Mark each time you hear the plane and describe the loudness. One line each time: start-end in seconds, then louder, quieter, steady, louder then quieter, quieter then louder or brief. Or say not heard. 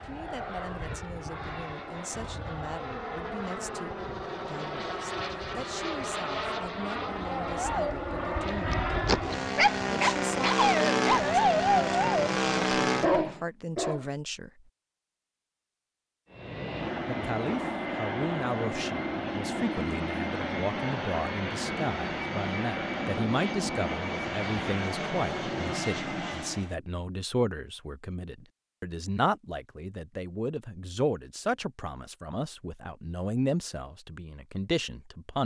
0.0-13.4 louder
16.3-26.8 steady.